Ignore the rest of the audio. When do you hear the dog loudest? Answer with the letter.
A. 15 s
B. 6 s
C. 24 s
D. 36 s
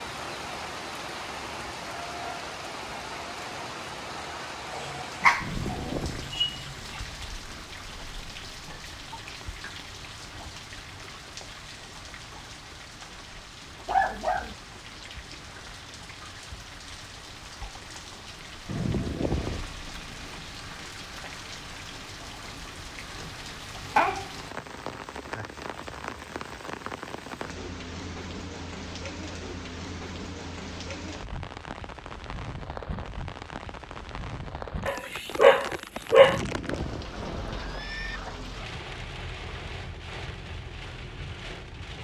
D.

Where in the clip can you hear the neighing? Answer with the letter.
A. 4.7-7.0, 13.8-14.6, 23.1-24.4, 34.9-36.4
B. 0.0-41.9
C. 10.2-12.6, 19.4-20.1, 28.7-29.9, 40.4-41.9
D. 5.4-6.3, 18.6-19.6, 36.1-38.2
D.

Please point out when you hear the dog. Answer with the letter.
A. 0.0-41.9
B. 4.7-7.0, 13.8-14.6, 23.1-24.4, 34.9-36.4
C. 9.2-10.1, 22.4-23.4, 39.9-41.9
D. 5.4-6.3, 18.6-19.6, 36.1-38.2
B.